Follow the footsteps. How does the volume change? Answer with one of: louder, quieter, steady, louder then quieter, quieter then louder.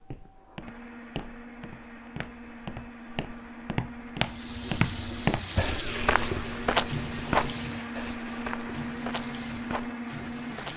louder then quieter.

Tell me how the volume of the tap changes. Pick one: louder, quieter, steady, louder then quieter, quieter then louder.
quieter.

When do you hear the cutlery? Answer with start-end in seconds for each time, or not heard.
not heard.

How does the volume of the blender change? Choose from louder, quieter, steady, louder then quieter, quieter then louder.
louder.